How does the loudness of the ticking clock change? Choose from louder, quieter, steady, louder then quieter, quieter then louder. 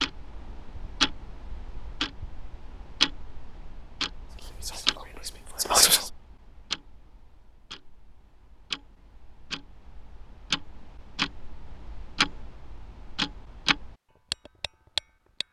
quieter then louder.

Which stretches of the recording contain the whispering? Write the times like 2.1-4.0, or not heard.
4.3-6.1.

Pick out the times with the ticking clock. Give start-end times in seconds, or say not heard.
0.0-15.4.